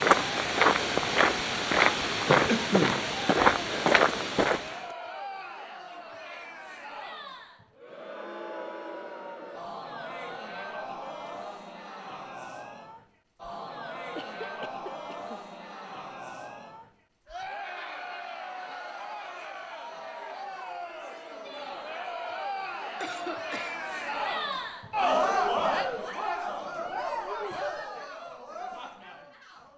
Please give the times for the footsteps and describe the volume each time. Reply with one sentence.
The footsteps can be heard from 0.0 to 4.8 s, at a steady volume.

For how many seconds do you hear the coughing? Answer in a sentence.
You can hear the coughing for 3 seconds altogether.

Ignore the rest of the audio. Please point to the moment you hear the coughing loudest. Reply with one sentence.
The loudest moment of the coughing is at 3 seconds.